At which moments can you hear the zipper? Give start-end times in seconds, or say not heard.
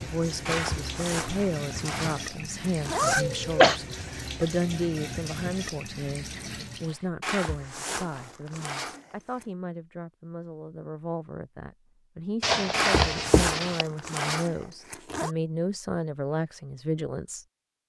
0.5-3.2, 7.2-9.4, 12.7-15.3.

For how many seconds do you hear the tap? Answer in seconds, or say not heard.
7 s.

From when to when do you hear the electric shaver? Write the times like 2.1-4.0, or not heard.
not heard.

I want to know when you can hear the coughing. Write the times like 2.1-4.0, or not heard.
3.2-3.8, 12.4-13.8.